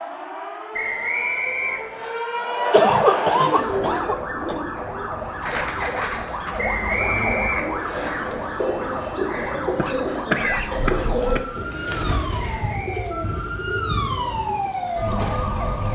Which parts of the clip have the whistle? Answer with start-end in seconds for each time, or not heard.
0.7-2.1, 6.5-8.1, 12.3-13.1.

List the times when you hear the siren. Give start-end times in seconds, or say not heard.
0.0-15.9.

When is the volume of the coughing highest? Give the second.
3 s.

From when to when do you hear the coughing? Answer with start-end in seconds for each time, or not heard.
2.7-4.6, 9.8-11.4.